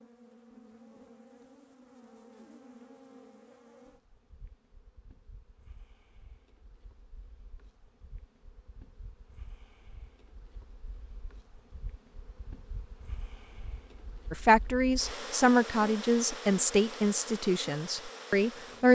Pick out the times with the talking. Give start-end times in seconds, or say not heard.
14.3-18.8.